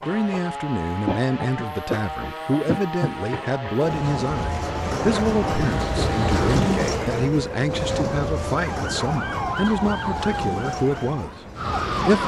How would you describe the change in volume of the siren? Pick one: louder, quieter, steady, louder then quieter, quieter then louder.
steady.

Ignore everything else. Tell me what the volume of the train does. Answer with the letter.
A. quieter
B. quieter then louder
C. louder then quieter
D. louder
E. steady
C.